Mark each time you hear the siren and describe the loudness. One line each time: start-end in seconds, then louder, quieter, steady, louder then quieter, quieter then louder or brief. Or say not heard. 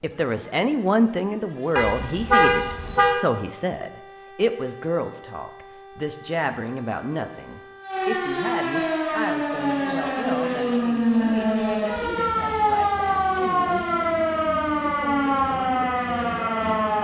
0.0-16.9 louder.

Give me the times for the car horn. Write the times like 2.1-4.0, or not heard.
1.8-3.2.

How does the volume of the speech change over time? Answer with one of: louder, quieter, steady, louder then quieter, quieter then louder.
quieter.